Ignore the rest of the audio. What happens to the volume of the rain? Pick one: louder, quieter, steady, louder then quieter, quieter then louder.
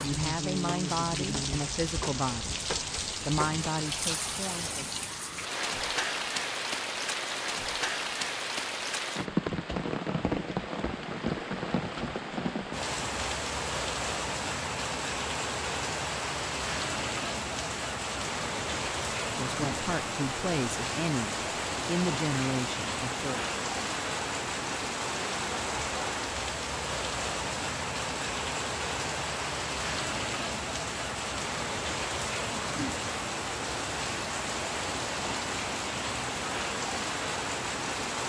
steady.